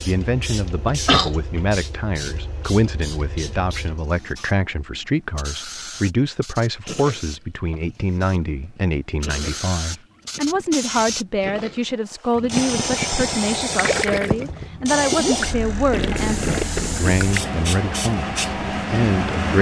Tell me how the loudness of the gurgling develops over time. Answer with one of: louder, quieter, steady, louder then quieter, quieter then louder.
louder.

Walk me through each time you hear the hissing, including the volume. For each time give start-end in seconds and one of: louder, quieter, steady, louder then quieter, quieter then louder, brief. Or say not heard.
0.0-19.5 quieter then louder.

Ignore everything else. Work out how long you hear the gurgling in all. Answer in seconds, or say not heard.
11 s.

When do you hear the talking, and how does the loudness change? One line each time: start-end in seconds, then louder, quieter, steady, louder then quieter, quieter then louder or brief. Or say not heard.
0.0-19.5 steady.